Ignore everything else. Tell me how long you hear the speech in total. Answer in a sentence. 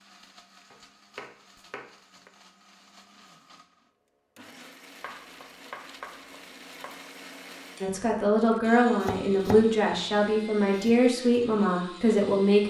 You can hear the speech for 5 seconds altogether.